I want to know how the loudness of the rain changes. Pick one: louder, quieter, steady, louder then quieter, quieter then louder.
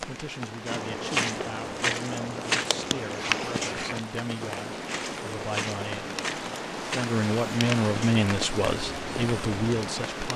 louder.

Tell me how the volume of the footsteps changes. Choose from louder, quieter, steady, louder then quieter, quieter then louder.
quieter.